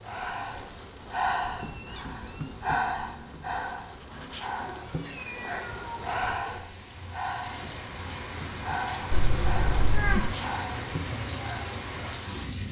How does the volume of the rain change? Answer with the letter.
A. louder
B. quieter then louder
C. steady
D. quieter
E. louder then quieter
A.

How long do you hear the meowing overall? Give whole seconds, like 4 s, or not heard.
4 s.